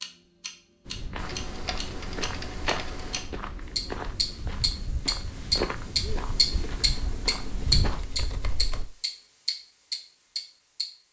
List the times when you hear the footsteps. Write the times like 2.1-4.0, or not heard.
0.8-8.2.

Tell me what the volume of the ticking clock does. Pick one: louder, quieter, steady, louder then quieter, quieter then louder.
louder then quieter.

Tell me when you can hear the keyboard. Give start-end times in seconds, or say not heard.
1.2-3.3, 6.0-8.9.